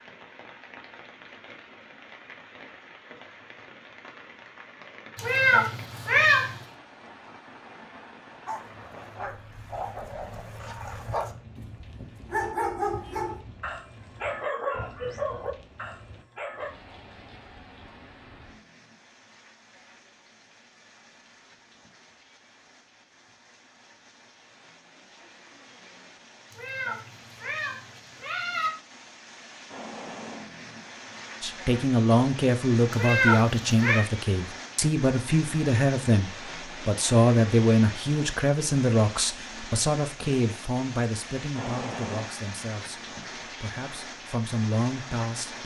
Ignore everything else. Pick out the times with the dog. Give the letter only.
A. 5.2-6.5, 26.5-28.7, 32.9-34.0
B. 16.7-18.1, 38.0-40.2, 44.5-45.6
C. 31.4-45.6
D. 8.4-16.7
D.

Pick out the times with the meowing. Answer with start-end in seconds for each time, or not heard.
5.2-6.5, 26.5-28.7, 32.9-34.0.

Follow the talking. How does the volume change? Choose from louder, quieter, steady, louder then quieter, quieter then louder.
quieter.